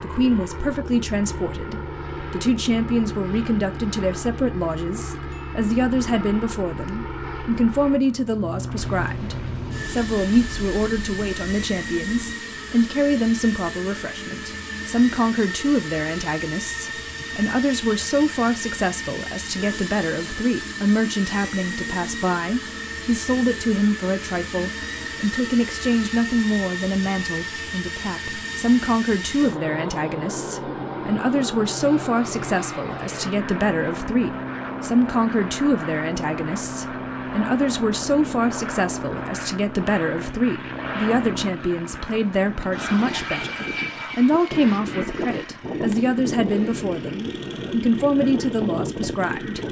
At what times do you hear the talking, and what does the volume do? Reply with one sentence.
You can hear the talking from 0.0 to 49.6 s, at a steady volume.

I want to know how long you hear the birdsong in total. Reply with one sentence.
You can't hear the birdsong here.